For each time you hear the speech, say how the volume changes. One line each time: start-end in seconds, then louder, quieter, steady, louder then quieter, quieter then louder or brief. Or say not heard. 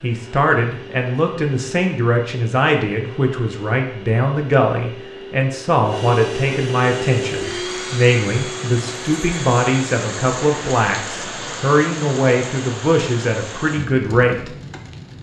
0.0-14.5 steady.